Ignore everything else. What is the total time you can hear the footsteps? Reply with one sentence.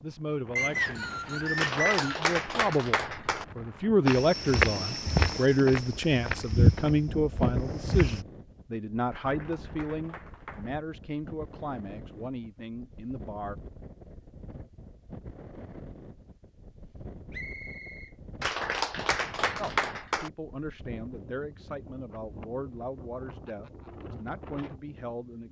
The footsteps can be heard for 4 seconds in total.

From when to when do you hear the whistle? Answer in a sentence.
You can hear the whistle from 0.6 to 2.1 s and from 17.3 to 18.1 s.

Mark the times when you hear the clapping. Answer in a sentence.
You can hear the clapping from 1.6 to 3.5 s, from 9.1 to 10.7 s and from 18.4 to 20.3 s.